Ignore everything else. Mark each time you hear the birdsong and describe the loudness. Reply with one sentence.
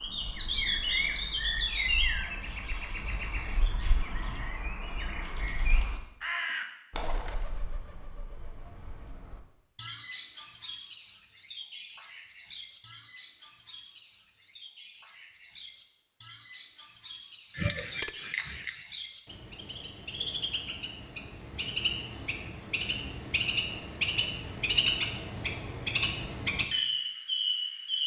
You can hear the birdsong from 0.0 to 28.0 s, getting quieter then louder.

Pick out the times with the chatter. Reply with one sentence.
You can't hear the chatter here.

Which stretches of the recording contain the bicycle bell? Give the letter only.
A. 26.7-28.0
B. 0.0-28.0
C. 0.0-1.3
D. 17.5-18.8
D.